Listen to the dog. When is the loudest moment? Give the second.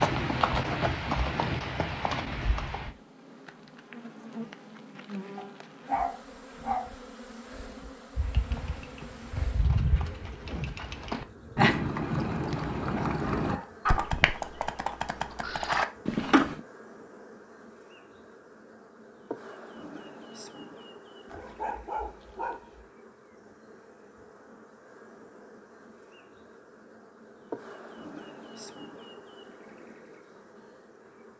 6 s.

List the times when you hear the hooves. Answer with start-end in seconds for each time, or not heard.
0.0-2.9, 8.2-16.6.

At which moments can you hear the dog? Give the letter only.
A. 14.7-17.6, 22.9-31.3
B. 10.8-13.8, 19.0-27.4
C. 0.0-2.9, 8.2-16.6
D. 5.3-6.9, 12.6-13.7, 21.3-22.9
D.